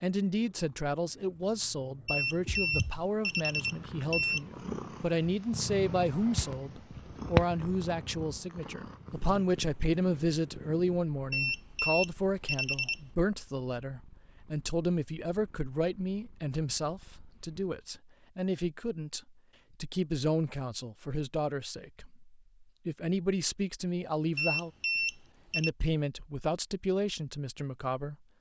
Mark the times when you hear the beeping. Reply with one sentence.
You can hear the beeping from 2.0 to 4.4 s, from 11.3 to 13.0 s and from 24.4 to 25.7 s.